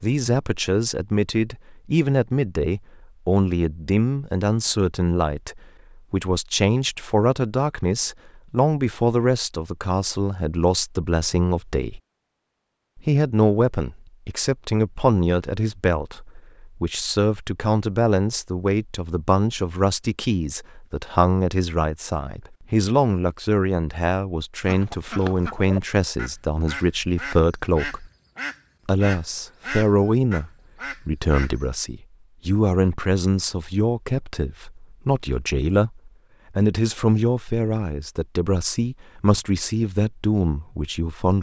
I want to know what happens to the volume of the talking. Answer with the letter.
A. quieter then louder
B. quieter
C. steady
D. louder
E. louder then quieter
C.